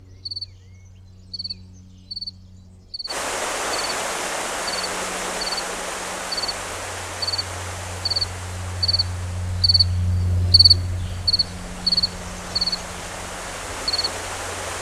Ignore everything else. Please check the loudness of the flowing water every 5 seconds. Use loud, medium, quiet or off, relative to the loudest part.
loud, medium, medium.